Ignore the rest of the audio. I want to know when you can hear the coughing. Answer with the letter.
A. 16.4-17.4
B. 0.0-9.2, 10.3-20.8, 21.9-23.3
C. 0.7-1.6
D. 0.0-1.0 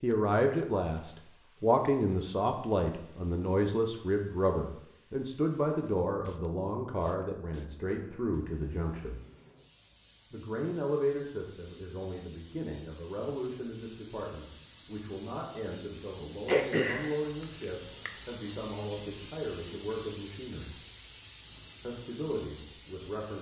A.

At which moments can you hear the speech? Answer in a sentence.
The speech can be heard from 0.0 to 9.2 s, from 10.3 to 20.8 s and from 21.9 to 23.3 s.